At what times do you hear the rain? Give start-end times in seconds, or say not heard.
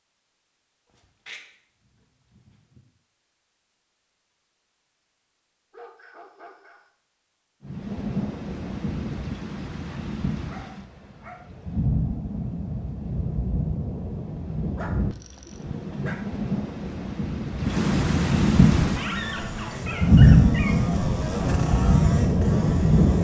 7.6-23.1.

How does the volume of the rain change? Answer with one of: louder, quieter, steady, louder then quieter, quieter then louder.
louder.